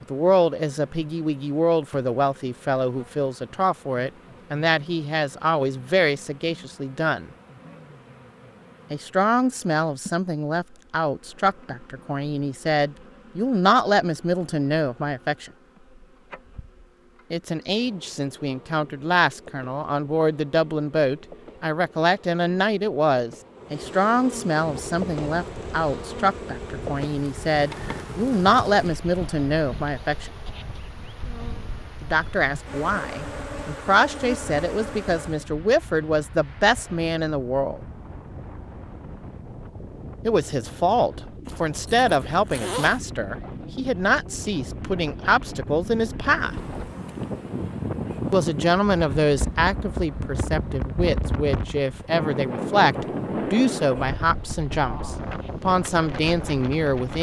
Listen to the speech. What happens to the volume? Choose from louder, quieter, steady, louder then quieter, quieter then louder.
steady.